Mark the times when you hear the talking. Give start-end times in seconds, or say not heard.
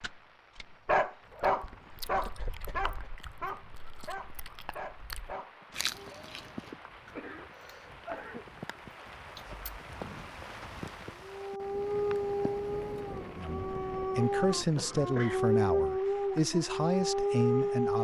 13.3-17.9.